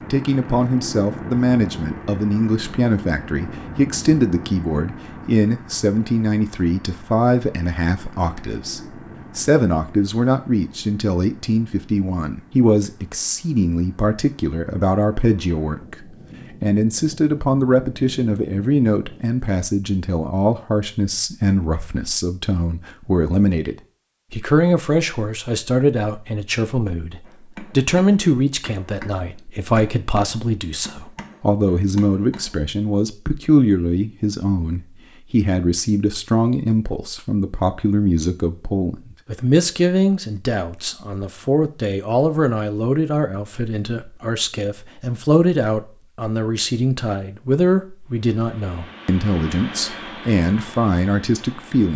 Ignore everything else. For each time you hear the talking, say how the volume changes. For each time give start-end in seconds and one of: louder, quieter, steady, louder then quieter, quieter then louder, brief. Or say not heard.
0.1-51.9 steady.